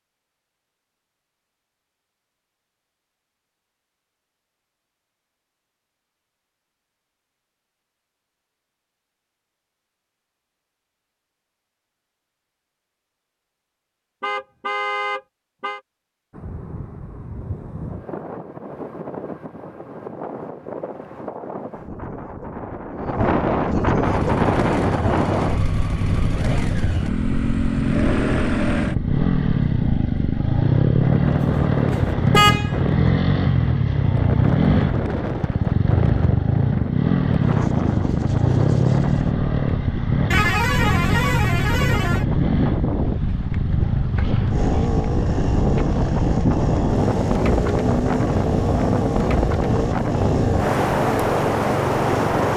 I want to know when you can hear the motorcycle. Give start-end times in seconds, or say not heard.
24.1-52.5.